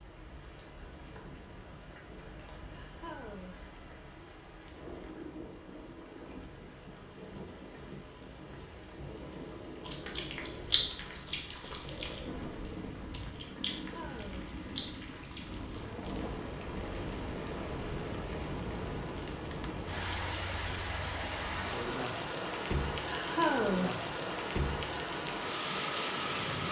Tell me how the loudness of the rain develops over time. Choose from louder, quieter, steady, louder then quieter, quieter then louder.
louder.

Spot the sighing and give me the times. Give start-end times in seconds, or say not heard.
2.7-3.6, 13.8-14.5, 23.1-24.0.